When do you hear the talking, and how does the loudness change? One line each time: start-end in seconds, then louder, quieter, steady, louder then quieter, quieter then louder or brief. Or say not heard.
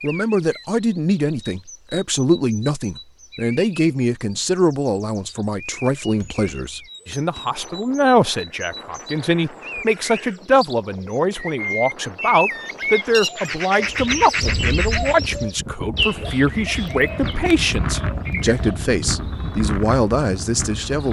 0.0-21.0 steady.